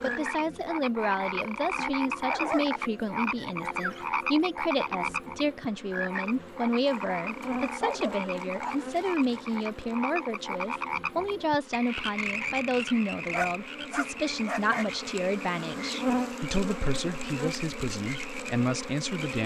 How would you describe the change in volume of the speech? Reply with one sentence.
The loudness of the speech stays about the same.